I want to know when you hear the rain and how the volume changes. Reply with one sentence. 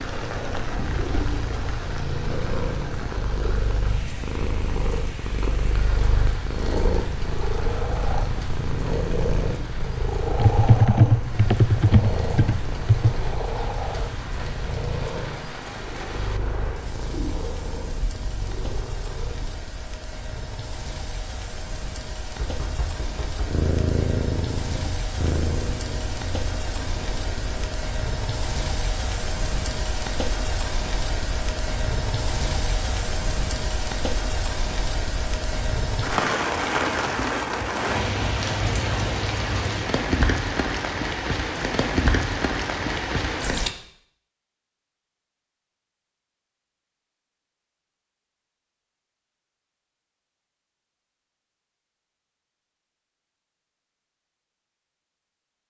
You can hear the rain from 0.0 to 43.7 s, getting louder.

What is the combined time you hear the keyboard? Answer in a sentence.
The keyboard can be heard for 3 seconds in total.